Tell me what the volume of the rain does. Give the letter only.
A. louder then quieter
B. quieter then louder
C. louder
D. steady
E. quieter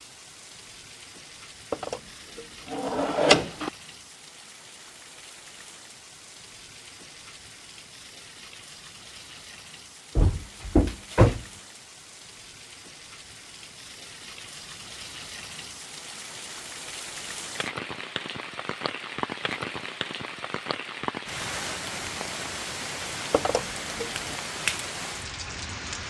C.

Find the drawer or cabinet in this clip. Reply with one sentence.
You can hear the drawer or cabinet from 1.7 to 3.7 s, from 10.2 to 11.4 s and from 23.3 to 24.4 s.